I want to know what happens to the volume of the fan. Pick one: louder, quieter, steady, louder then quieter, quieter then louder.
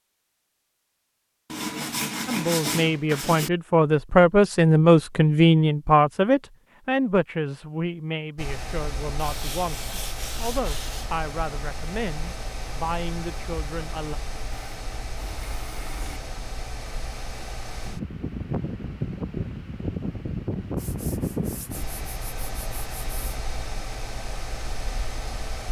louder then quieter.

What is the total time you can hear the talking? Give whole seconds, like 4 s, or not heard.
12 s.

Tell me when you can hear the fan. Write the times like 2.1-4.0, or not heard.
8.3-25.6.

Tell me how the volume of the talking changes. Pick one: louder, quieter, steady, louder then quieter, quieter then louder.
quieter.